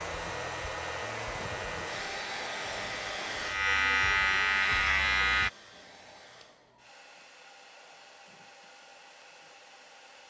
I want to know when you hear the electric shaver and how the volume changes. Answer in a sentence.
You can hear the electric shaver from 0.0 to 5.5 s, getting louder.